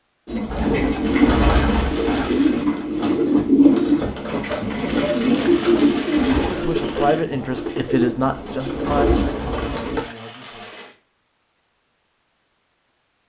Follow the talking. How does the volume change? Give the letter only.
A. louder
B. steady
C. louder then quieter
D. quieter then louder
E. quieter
E.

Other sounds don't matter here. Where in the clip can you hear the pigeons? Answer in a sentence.
You can hear the pigeons from 0.2 to 10.0 s.